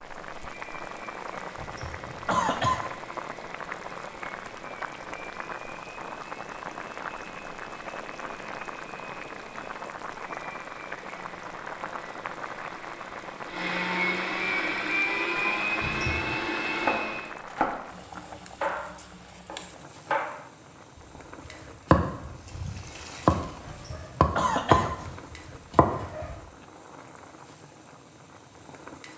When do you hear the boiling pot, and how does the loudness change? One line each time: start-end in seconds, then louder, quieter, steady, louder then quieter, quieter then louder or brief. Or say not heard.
0.0-29.1 quieter.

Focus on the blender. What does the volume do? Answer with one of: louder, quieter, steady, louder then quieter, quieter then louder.
louder.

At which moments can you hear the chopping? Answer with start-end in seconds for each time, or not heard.
16.8-20.2, 20.9-26.4.